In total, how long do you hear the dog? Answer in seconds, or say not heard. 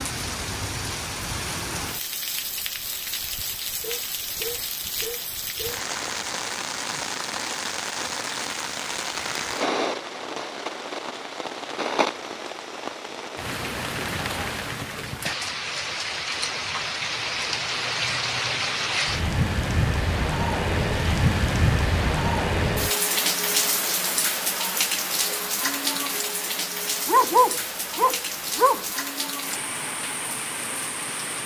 4 s.